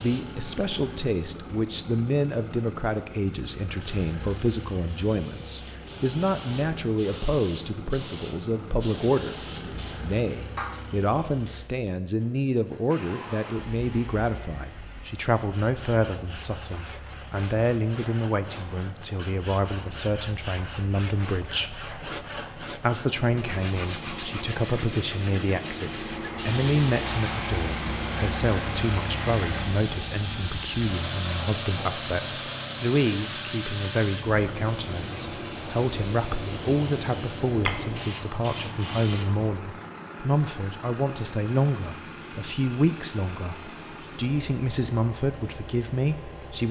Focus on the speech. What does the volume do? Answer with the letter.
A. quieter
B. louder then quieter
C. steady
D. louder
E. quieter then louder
C.